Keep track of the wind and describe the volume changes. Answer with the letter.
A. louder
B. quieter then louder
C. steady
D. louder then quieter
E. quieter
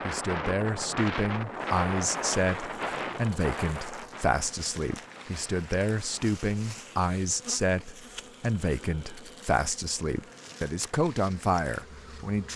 E.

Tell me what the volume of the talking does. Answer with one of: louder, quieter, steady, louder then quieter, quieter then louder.
steady.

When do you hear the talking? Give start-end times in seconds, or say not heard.
0.1-12.5.